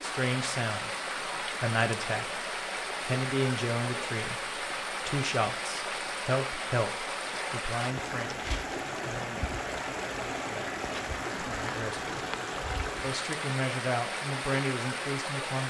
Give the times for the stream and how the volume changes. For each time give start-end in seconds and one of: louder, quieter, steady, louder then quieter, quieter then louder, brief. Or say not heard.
0.0-15.6 steady.